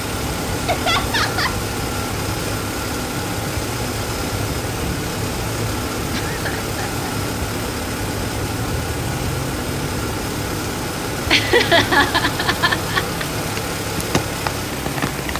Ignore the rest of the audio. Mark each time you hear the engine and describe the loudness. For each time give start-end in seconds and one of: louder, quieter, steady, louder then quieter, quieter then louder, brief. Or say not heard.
0.0-15.3 steady.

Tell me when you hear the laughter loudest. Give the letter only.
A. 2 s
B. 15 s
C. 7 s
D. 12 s
D.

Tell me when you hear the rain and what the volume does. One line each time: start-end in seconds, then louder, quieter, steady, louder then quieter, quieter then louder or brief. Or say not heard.
0.0-15.3 steady.